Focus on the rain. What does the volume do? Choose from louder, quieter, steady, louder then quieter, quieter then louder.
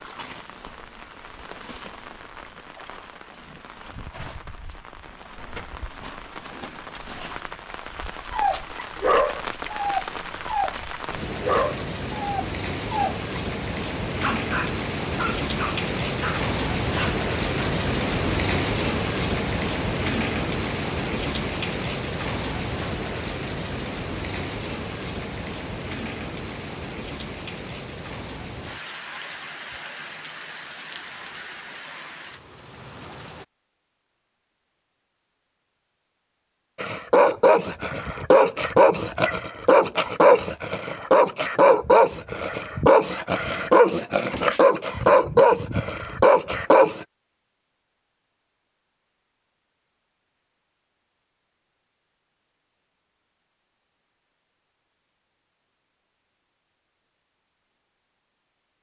louder then quieter.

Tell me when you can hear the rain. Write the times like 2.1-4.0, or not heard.
0.0-33.5.